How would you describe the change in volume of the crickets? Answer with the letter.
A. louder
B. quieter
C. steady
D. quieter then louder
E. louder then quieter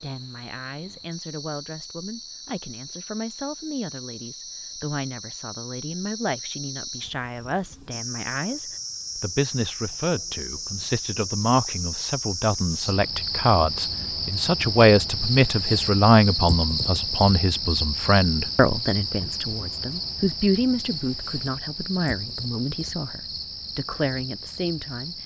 E.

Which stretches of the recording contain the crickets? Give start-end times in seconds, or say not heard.
0.0-25.2.